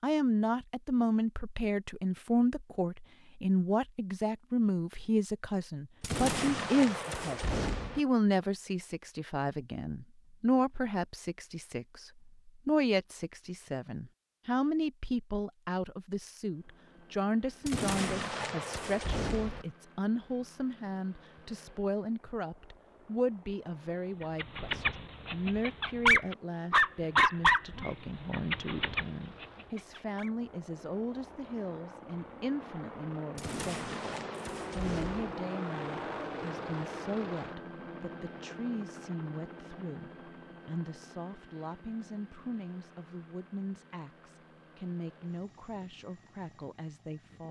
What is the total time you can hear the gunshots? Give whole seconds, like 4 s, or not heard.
6 s.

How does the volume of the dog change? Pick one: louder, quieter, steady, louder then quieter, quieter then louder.
louder then quieter.